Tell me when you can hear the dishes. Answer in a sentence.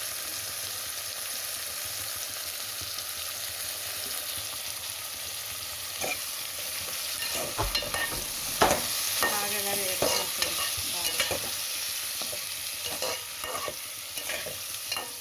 You can't hear the dishes here.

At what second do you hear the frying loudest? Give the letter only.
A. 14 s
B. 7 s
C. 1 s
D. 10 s
D.